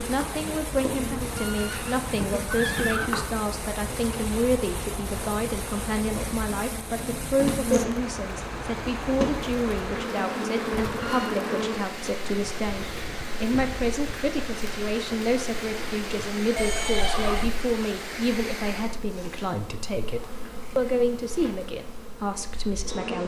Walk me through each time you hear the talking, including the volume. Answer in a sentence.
The talking can be heard from 0.1 to 23.2 s, at a steady volume.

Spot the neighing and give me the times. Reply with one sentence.
You can hear the neighing from 1.1 to 3.1 s, from 10.7 to 11.3 s and from 16.6 to 17.5 s.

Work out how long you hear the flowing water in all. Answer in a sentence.
You can hear the flowing water for 19 seconds altogether.